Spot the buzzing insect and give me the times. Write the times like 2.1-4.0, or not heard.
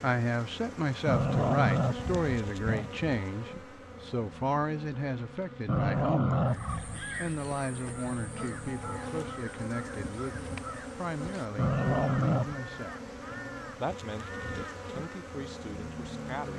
0.0-16.5.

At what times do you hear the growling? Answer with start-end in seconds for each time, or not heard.
1.1-2.9, 5.7-7.0, 11.6-12.6.